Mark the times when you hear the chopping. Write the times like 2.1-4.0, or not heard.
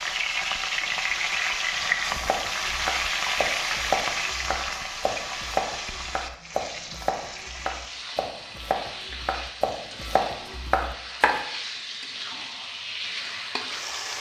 1.8-11.4.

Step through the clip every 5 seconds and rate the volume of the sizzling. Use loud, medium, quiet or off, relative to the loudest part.
loud, medium, medium.